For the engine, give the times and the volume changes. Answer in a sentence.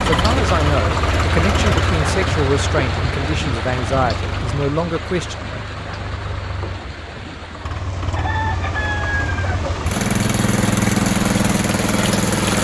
The engine can be heard from 0.0 to 12.5 s, getting quieter then louder.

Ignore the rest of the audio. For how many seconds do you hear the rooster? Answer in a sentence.
The rooster can be heard for 2 seconds in total.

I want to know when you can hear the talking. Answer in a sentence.
The talking can be heard from 0.1 to 5.3 s.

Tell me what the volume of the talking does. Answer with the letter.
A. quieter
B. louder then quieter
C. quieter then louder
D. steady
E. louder
D.